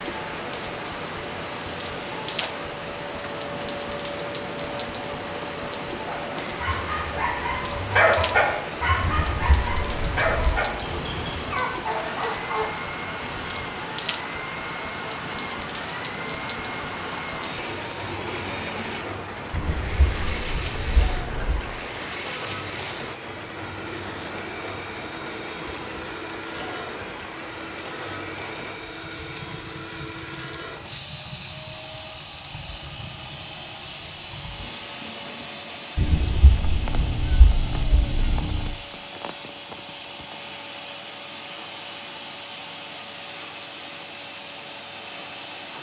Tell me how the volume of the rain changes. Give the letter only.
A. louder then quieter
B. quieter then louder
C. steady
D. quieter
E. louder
D.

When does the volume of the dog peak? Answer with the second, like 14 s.
8 s.